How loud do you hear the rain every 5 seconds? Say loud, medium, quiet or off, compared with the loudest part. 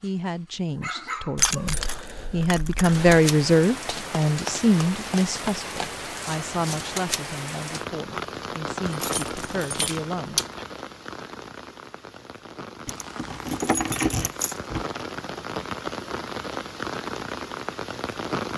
loud, loud, medium, loud.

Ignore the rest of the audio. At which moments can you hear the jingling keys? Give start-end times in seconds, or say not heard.
1.4-3.1, 8.8-10.7, 12.8-14.8.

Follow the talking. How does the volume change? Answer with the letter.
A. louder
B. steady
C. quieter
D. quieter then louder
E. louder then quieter
E.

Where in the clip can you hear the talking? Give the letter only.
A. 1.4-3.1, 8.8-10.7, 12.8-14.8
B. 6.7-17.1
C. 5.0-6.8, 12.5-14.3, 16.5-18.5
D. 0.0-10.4
D.